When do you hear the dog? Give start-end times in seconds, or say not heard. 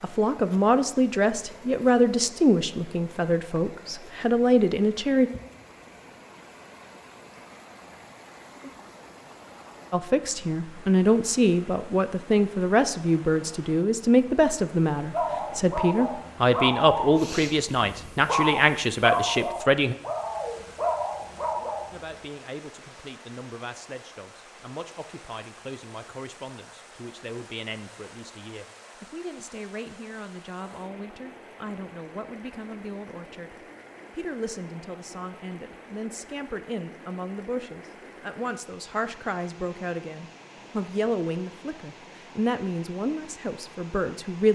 15.1-22.2.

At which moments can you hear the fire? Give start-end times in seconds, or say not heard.
not heard.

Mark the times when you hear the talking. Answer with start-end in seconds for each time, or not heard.
0.0-5.3, 9.9-19.9, 21.9-44.5.